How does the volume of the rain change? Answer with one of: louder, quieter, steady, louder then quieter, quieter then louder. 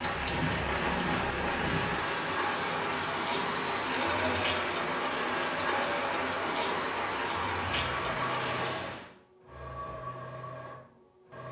steady.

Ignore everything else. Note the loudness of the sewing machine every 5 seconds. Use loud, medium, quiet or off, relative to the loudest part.
loud, loud, medium.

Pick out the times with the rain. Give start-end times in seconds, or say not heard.
0.0-9.1.